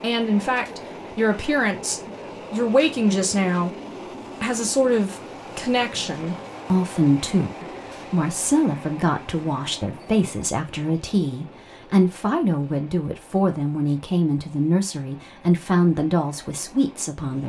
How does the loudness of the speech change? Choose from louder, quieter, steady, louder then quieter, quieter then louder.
steady.